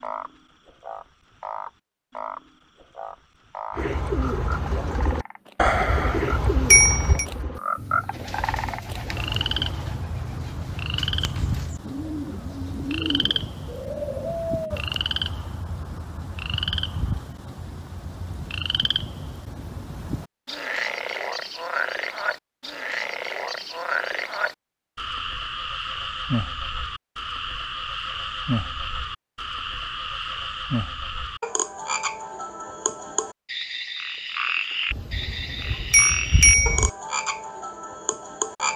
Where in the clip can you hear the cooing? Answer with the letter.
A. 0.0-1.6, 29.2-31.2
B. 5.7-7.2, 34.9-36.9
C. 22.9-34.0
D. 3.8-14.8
D.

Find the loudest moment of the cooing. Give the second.
6 s.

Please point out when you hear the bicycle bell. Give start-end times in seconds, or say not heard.
5.7-7.2, 34.9-36.9.